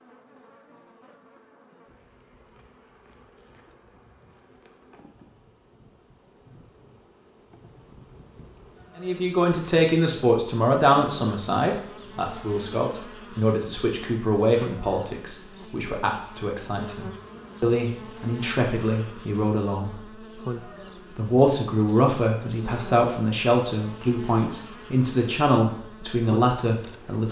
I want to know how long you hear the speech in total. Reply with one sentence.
You can hear the speech for 17 seconds altogether.